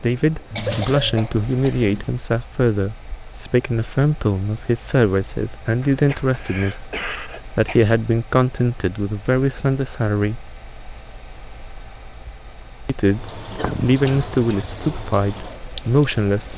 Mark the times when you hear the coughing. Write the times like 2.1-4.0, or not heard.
0.6-1.9, 5.8-7.8, 13.6-14.2.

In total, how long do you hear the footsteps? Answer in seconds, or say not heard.
not heard.